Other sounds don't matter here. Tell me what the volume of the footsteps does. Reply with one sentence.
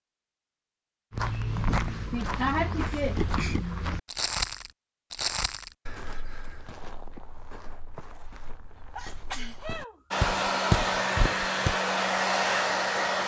The loudness of the footsteps goes down, then up.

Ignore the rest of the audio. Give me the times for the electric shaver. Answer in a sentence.
The electric shaver can't be heard in this clip.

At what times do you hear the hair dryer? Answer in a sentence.
The hair dryer can be heard from 10.1 to 13.2 s.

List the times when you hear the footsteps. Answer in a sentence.
The footsteps can be heard from 1.1 to 11.8 s.